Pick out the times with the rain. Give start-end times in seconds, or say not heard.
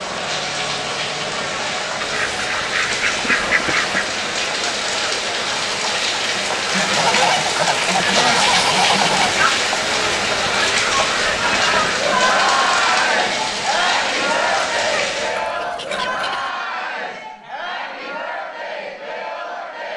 0.0-15.3.